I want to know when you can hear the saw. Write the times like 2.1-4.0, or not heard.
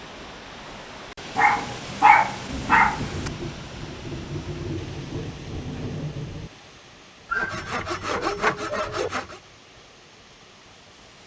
7.3-9.4.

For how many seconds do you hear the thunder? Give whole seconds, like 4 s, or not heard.
4 s.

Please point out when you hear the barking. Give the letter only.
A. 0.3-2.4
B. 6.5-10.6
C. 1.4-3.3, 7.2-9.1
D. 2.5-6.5
C.